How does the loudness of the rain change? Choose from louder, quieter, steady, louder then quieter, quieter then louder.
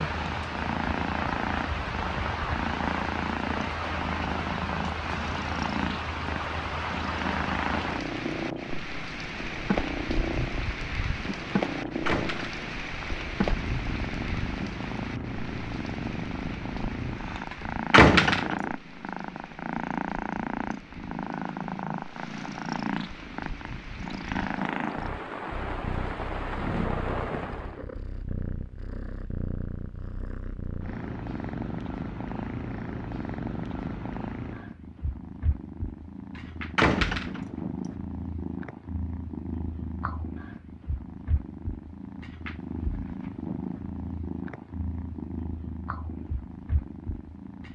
quieter then louder.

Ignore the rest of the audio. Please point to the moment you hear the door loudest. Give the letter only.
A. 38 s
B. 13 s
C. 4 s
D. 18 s
D.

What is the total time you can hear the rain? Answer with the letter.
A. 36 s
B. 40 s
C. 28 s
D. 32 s
C.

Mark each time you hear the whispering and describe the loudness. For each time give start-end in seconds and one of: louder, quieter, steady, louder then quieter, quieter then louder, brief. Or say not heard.
not heard.